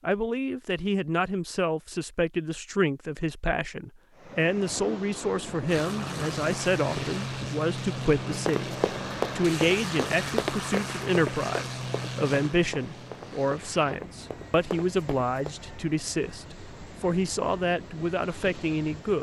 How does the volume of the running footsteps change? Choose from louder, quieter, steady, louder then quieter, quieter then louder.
quieter.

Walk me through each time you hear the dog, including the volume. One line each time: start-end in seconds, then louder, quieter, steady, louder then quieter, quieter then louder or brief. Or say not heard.
not heard.